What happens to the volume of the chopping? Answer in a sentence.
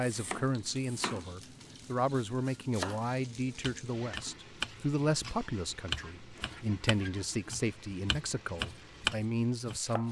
The volume of the chopping goes up.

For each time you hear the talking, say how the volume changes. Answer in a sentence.
You can hear the talking from 0.0 to 10.0 s, at a steady volume.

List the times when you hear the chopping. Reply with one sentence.
You can hear the chopping from 0.0 to 10.0 s.